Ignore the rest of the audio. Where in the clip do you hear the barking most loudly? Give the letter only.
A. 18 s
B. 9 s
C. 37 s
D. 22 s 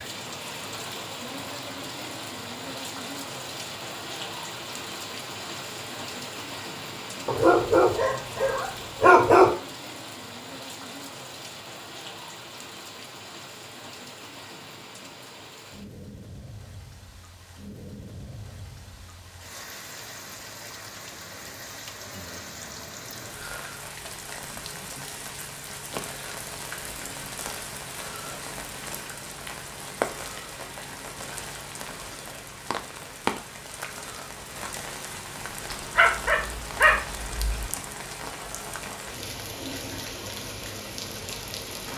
B.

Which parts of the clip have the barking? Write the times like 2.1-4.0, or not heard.
7.2-9.5, 36.0-37.7.